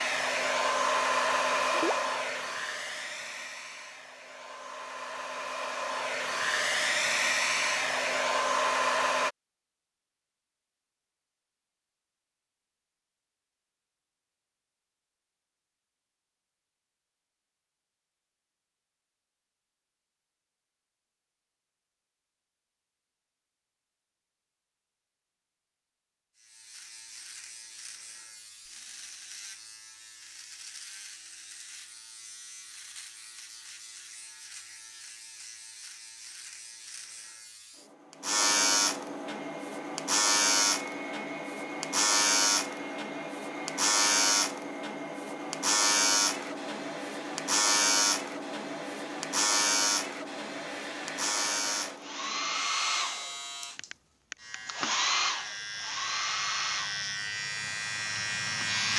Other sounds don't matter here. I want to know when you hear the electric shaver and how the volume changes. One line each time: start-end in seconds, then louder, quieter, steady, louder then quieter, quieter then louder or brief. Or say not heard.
26.4-58.9 louder then quieter.